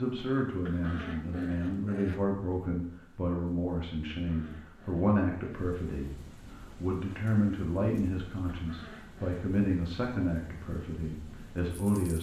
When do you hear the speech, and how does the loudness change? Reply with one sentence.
The speech can be heard from 0.0 to 12.1 s, at a steady volume.